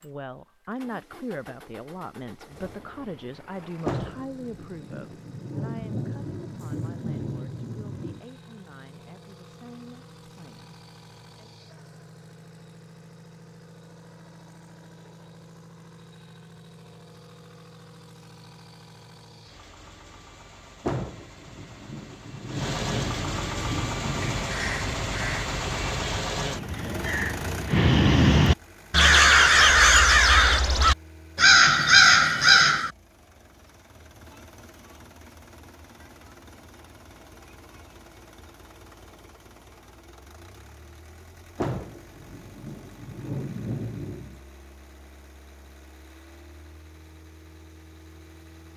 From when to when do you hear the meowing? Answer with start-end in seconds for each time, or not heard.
not heard.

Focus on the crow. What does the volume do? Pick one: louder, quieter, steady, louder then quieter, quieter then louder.
louder.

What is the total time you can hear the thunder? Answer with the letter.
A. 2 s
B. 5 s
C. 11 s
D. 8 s
C.